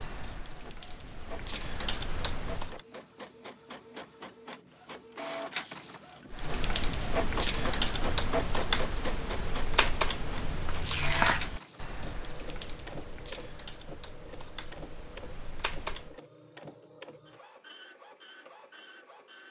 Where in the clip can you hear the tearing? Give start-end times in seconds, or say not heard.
10.3-11.4.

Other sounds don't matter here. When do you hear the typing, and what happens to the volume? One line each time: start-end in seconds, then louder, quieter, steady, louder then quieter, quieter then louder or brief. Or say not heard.
0.0-2.8 brief
6.3-16.2 quieter.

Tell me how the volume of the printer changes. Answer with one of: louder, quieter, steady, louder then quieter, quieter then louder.
louder then quieter.